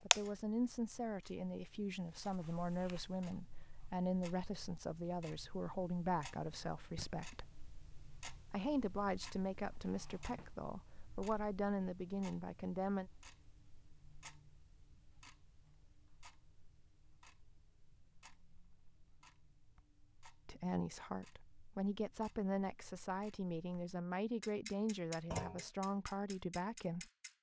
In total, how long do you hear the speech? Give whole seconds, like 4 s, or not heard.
19 s.